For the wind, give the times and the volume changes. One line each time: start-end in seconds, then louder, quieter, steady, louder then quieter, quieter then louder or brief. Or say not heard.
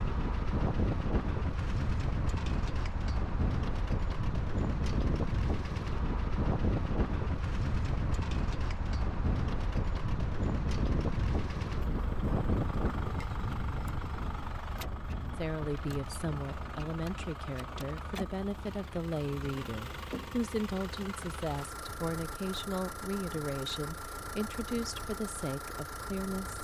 0.0-26.5 quieter.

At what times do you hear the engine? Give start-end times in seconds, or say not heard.
0.0-26.5.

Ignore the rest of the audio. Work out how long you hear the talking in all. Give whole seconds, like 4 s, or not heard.
11 s.